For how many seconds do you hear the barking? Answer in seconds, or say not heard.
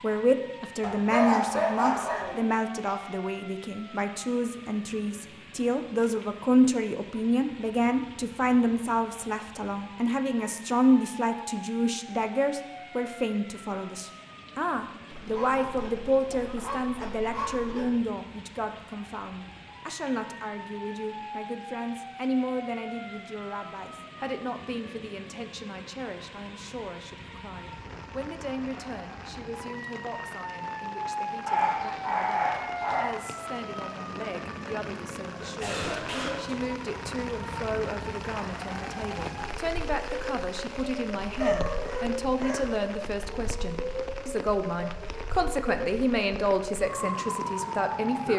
7 s.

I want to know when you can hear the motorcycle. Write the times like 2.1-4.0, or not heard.
not heard.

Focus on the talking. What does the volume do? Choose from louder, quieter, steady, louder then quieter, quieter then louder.
quieter then louder.